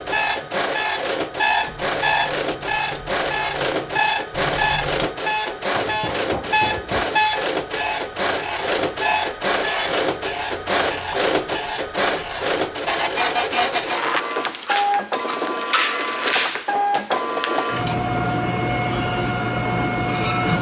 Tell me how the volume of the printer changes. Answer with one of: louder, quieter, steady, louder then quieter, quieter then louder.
steady.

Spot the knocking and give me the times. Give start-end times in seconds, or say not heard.
5.7-7.2, 16.4-17.6.